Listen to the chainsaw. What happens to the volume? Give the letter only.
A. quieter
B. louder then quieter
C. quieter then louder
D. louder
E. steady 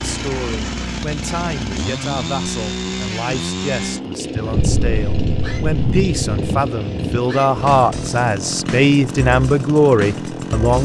E.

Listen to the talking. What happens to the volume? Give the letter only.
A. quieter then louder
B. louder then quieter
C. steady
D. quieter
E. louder
E.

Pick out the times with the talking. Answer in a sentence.
You can hear the talking from 0.0 to 10.7 s.